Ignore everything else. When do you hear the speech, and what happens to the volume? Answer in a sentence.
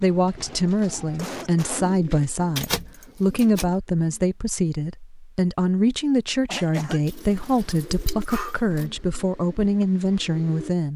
The speech can be heard from 0.0 to 10.9 s, at a steady volume.